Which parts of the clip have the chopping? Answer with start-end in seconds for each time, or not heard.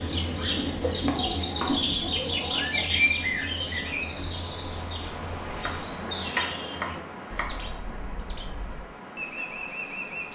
1.1-1.9, 5.5-7.7.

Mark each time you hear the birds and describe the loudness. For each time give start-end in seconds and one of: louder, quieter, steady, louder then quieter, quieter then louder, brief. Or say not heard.
0.0-10.3 quieter.